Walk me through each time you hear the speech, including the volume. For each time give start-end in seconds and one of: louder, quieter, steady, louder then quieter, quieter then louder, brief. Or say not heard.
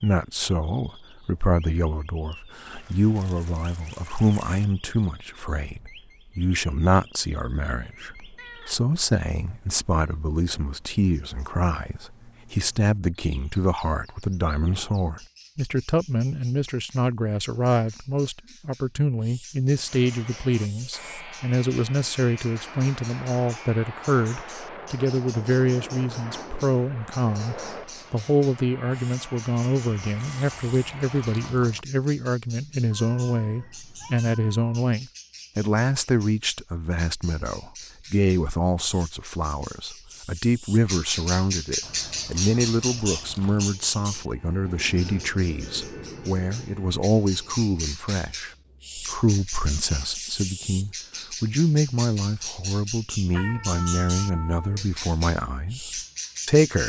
0.0-56.8 steady.